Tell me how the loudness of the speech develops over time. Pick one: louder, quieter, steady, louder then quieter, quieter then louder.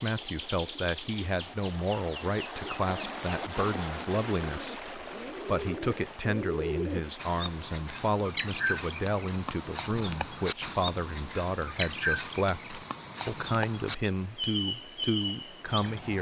steady.